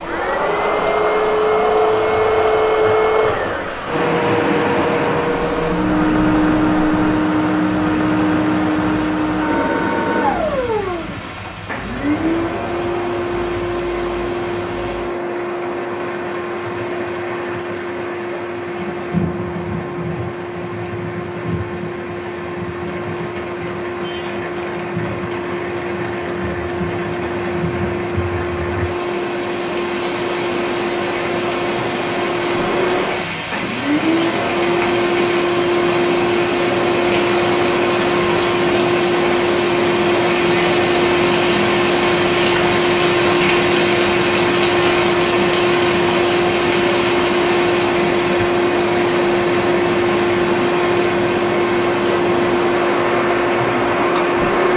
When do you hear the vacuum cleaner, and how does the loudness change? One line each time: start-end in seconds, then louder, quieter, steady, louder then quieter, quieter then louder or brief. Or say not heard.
0.0-54.7 quieter then louder.